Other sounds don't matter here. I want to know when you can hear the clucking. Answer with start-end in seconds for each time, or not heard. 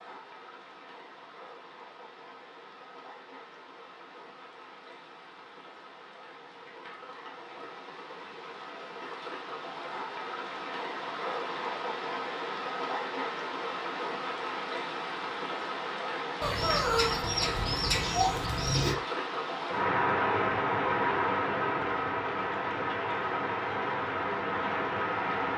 16.4-18.9.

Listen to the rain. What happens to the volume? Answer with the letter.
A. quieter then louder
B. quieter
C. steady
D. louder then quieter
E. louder
E.